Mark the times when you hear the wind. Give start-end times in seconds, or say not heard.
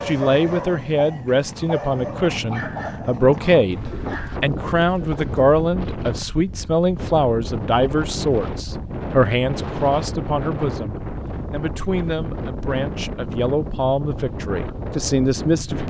0.0-15.8.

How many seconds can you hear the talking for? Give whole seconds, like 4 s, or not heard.
16 s.